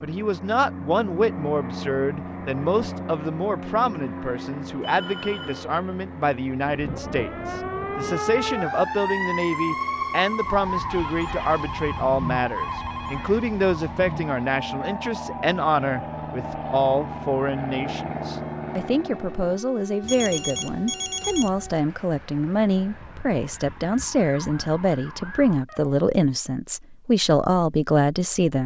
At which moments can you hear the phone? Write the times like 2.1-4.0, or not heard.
4.8-5.7, 10.8-13.3, 20.0-21.8.